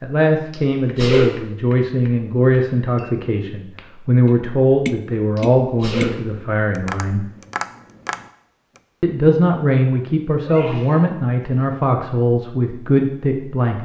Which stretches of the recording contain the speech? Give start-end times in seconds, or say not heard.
0.0-7.2, 9.0-13.8.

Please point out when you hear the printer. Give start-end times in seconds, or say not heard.
not heard.